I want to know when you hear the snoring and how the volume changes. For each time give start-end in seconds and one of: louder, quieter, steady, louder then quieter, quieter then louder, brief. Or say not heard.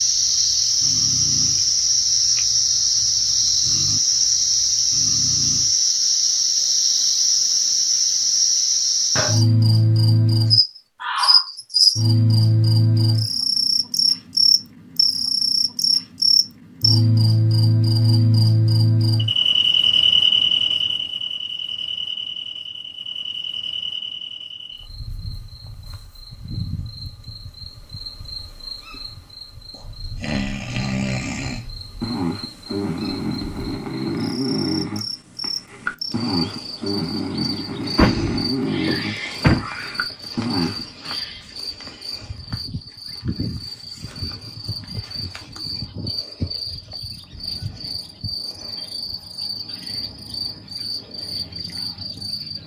0.0-5.8 quieter then louder
29.8-40.9 steady.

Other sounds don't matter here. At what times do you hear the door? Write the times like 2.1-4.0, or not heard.
37.5-39.6.